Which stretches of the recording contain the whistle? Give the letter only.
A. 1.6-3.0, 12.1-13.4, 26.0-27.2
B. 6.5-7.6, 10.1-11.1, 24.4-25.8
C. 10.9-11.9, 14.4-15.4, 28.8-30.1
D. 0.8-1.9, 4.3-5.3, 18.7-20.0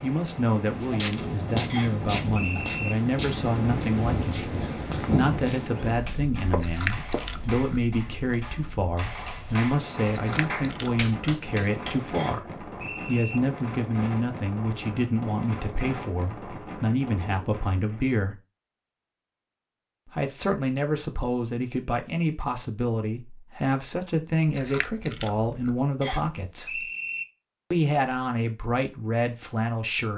A.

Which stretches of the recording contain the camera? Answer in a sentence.
The camera can be heard from 6.5 to 7.6 s, from 10.1 to 11.1 s and from 24.4 to 25.8 s.